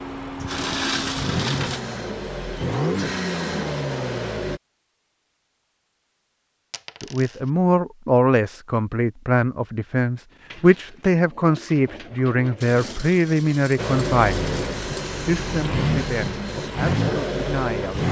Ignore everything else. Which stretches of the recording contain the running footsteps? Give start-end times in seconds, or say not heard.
not heard.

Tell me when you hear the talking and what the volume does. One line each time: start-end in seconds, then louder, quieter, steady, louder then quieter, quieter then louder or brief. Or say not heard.
7.0-18.0 quieter.